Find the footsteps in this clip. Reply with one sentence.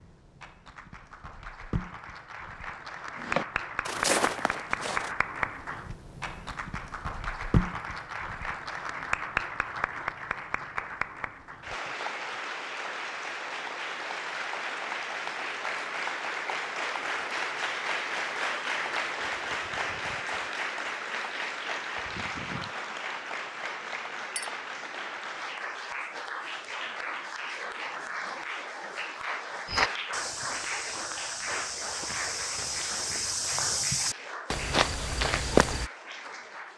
The footsteps can be heard from 3.1 to 5.2 s and from 29.6 to 35.9 s.